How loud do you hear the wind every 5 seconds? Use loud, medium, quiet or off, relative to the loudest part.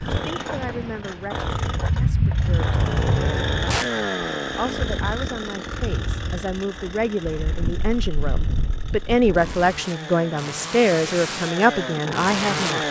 loud, medium, off.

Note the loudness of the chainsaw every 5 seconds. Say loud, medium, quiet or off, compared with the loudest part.
loud, medium, loud.